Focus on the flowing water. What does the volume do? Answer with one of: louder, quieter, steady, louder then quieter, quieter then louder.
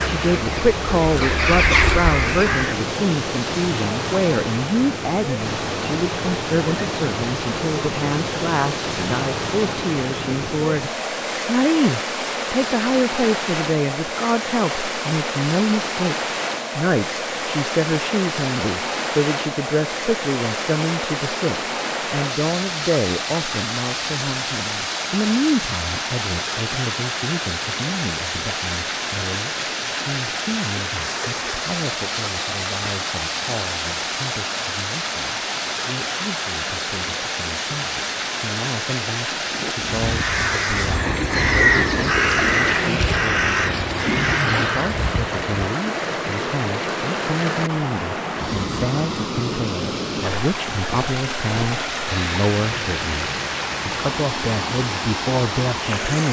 steady.